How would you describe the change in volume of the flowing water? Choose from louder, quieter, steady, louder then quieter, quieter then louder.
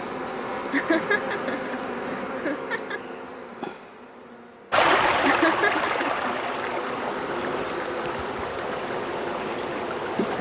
quieter.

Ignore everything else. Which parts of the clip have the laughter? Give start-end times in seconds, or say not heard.
0.7-3.0, 5.2-6.3.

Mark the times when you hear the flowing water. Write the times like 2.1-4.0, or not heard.
4.7-10.3.